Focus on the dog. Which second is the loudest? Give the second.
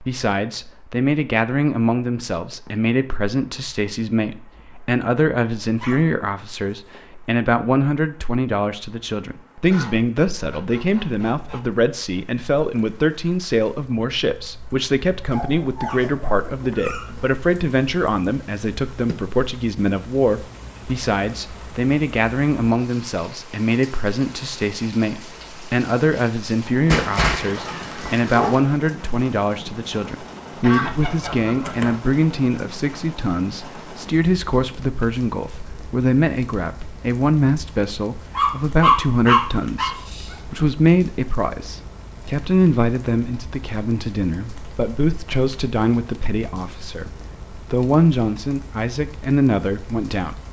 39 s.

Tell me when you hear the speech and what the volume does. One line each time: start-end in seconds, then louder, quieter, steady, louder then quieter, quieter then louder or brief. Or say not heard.
0.0-50.4 steady.